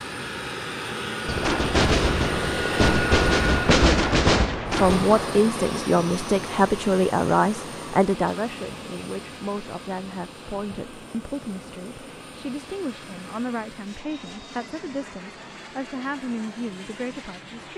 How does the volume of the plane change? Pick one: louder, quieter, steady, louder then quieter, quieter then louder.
quieter.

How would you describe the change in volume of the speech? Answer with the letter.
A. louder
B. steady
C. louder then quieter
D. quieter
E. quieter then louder
D.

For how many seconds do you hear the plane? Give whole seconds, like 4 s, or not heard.
18 s.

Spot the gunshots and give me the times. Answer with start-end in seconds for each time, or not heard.
1.2-5.2.